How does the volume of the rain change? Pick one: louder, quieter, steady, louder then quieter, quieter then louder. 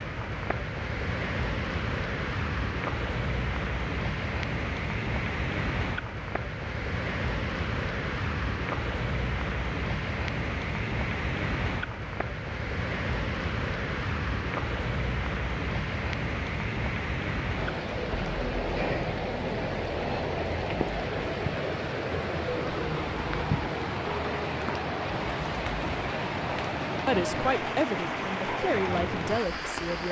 steady.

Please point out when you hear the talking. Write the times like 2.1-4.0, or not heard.
27.1-30.0.